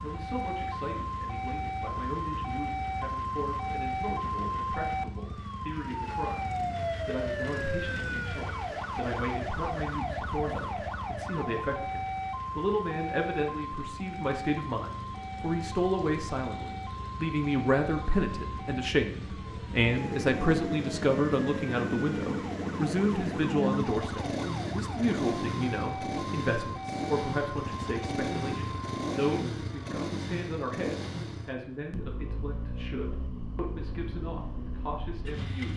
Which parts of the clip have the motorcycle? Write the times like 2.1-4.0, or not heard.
0.0-35.7.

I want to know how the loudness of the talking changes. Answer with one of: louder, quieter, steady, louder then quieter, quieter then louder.
louder then quieter.